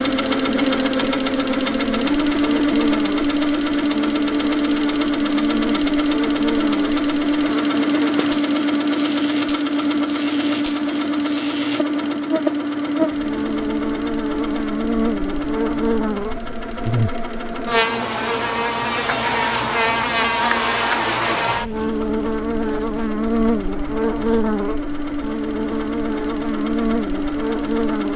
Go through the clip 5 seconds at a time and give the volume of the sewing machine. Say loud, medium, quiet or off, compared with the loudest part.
loud, loud, loud, medium, medium, medium.